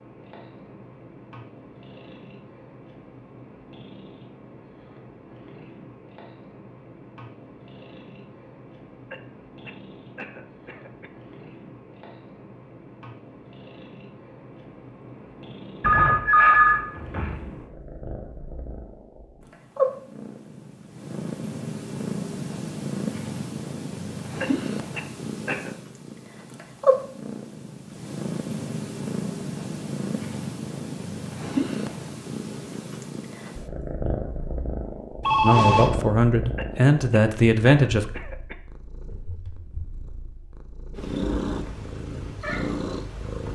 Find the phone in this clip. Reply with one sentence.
The phone can be heard from 15.8 to 17.4 s and from 35.2 to 35.9 s.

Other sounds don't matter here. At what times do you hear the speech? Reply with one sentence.
The speech can be heard from 35.4 to 38.0 s.